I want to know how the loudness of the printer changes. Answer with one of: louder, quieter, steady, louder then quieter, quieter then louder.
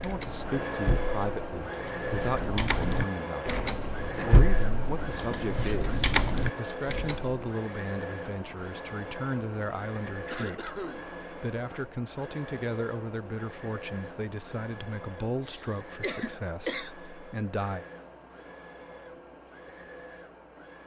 quieter.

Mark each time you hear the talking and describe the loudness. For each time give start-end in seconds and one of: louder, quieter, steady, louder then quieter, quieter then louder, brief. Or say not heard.
0.0-17.9 steady.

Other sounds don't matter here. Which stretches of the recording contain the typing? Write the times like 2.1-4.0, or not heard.
0.0-7.4.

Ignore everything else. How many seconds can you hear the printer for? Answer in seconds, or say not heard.
21 s.